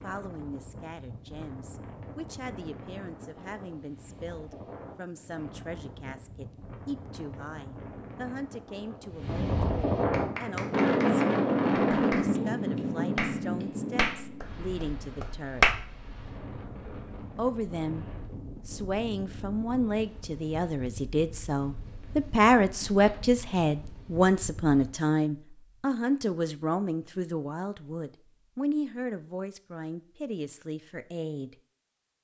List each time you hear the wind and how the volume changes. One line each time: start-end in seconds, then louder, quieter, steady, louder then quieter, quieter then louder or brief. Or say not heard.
0.0-24.9 louder then quieter.